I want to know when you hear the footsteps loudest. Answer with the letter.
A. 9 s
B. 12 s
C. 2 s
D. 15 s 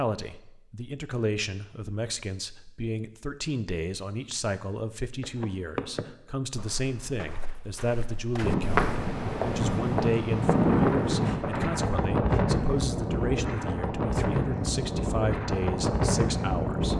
A.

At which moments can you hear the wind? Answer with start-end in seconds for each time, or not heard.
8.4-16.9.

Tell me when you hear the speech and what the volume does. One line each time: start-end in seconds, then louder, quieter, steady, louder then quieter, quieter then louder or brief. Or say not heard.
0.0-16.9 steady.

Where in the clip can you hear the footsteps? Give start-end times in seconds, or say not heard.
5.2-11.7.